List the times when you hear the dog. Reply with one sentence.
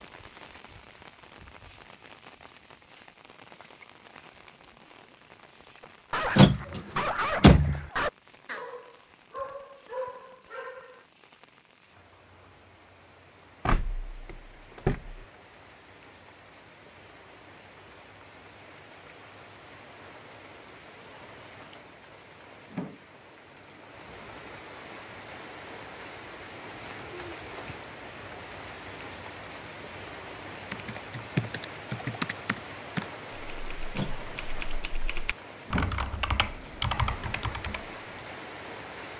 The dog can be heard from 5.8 to 11.1 s.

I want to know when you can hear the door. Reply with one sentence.
You can hear the door from 6.3 to 7.8 s, from 13.7 to 15.2 s and from 34.0 to 34.6 s.